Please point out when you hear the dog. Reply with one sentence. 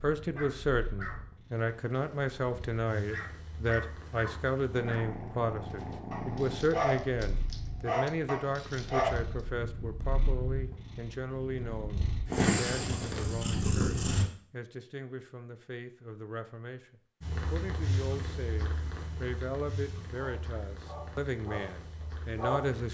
The dog can be heard from 0.3 to 9.2 s and from 20.1 to 22.8 s.